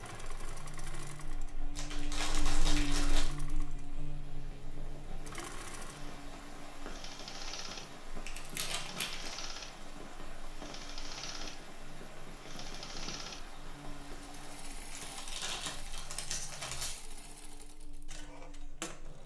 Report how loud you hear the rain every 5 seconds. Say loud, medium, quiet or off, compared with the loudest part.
medium, loud, loud, off.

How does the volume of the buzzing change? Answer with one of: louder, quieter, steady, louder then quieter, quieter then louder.
quieter.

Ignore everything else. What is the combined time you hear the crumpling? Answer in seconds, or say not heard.
5 s.